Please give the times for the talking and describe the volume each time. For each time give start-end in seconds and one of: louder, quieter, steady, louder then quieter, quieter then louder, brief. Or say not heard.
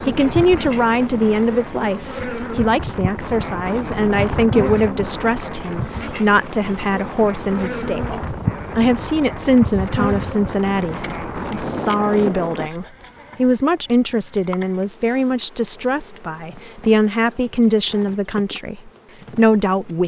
0.1-20.0 steady.